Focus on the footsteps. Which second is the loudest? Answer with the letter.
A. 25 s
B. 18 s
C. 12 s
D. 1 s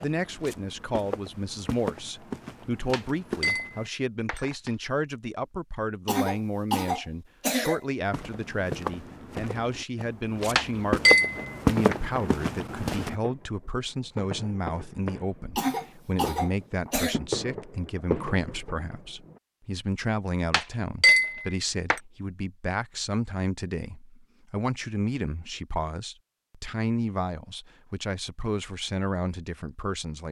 C.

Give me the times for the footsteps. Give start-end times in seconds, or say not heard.
0.0-3.9, 8.1-13.2.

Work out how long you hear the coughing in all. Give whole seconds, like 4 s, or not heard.
3 s.